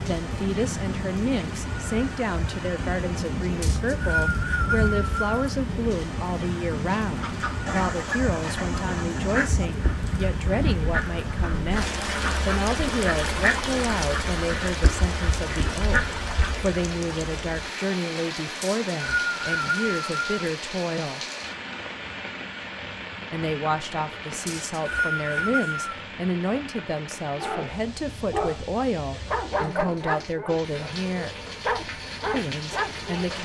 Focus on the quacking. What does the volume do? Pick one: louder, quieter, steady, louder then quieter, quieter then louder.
steady.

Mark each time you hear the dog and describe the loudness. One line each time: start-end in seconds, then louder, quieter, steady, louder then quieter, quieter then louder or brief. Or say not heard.
27.4-33.3 steady.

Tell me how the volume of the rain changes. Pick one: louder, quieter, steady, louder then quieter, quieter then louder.
quieter.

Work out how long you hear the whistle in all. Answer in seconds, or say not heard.
5 s.